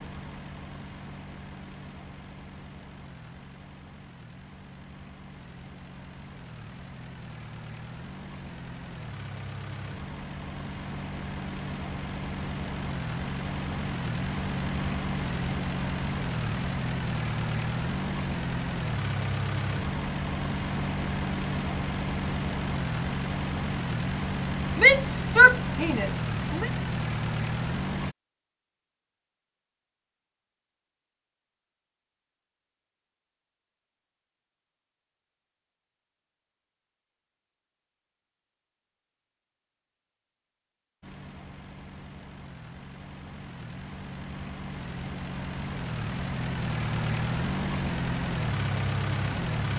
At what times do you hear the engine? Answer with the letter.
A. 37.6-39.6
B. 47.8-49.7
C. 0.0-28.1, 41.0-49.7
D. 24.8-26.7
C.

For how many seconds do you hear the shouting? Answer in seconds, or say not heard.
2 s.